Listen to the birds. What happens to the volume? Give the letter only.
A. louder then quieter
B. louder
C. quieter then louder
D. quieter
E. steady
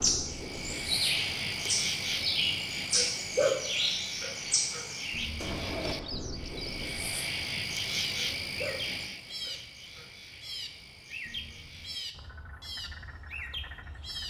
D.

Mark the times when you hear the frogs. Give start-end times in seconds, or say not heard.
0.0-14.2.